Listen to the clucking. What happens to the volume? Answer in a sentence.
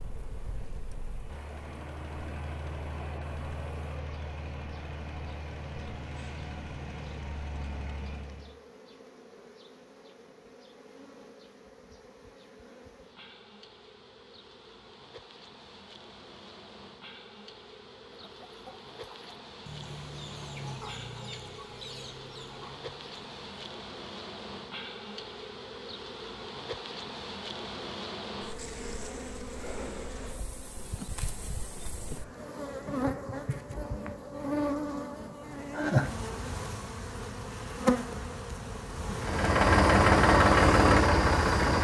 The loudness of the clucking goes up, then down.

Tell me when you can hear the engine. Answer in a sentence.
You can hear the engine from 0.0 to 8.6 s and from 39.1 to 41.7 s.